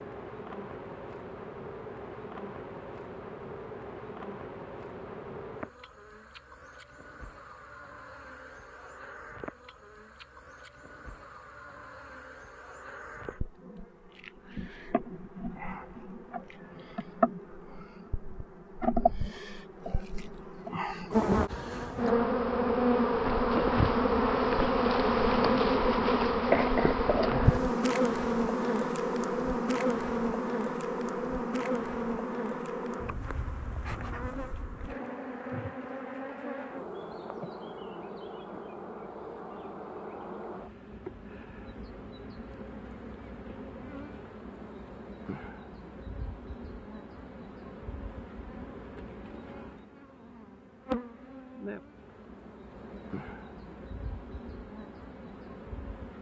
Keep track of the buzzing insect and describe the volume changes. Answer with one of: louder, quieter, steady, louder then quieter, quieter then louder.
louder then quieter.